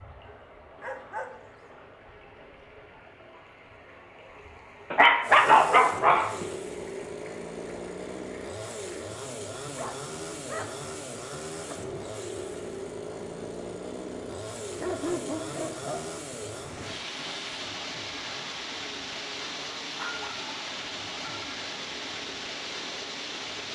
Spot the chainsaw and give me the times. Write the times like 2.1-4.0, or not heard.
5.2-23.7.